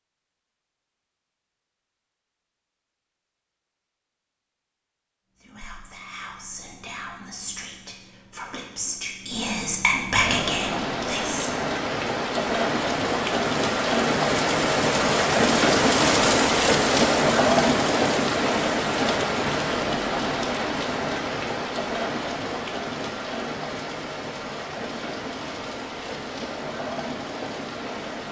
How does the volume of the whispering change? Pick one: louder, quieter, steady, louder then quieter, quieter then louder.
louder.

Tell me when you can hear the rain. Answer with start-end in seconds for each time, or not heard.
10.2-28.2.